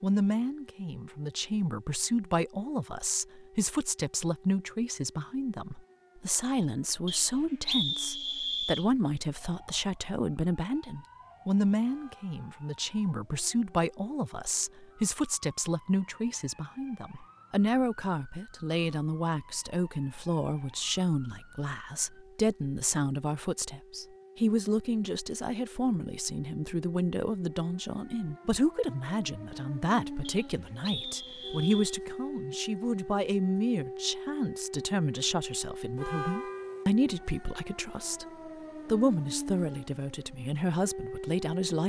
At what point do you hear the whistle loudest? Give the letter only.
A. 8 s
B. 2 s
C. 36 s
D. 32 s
A.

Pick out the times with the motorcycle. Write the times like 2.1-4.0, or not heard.
not heard.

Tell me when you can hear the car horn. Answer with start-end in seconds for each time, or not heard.
11.8-12.5, 36.0-36.9.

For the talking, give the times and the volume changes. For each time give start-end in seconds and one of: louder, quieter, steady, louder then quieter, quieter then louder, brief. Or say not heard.
0.0-38.2 steady
38.9-41.8 brief.